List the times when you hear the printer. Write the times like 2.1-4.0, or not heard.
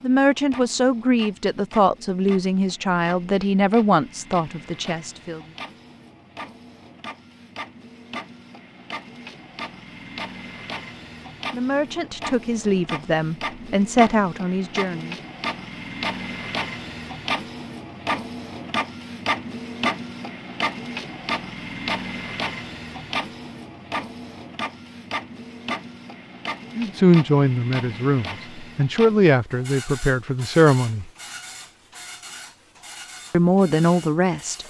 0.0-34.6.